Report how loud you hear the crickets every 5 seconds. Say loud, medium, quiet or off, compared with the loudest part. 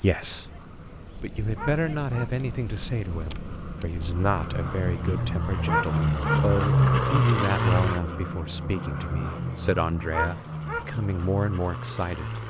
loud, medium, off.